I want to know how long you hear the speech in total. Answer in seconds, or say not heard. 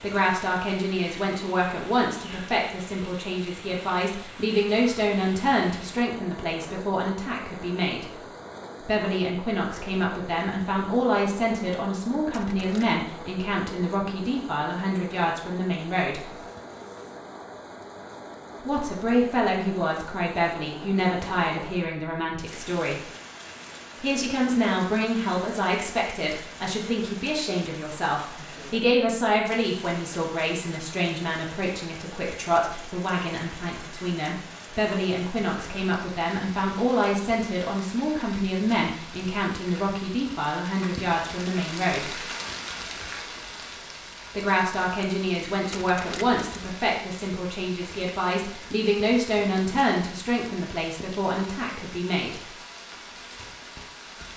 46 s.